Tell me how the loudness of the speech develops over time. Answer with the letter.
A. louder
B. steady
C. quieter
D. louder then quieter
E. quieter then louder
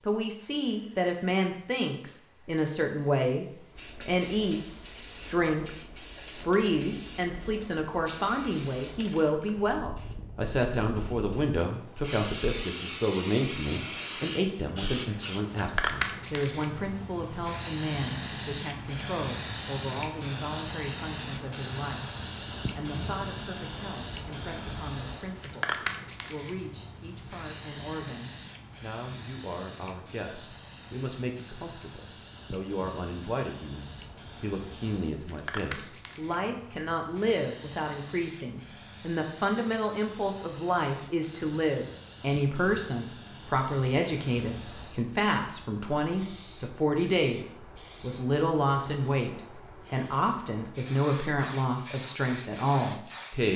E.